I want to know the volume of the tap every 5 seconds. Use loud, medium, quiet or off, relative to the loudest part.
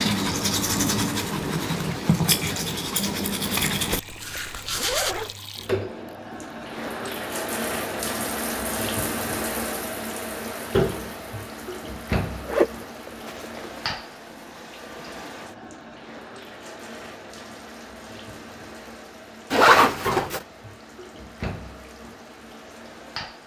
medium, loud, loud, medium, medium.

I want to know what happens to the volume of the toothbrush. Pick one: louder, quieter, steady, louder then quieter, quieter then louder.
quieter.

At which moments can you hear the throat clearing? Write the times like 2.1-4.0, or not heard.
not heard.